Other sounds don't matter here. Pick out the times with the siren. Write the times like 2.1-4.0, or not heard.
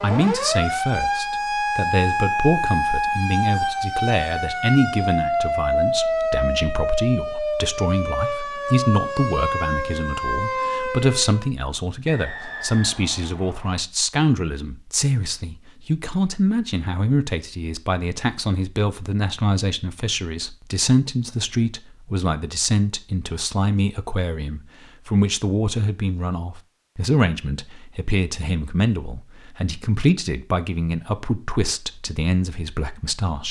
0.0-11.5.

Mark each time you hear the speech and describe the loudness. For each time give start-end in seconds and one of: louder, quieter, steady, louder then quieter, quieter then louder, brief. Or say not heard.
0.0-33.4 steady.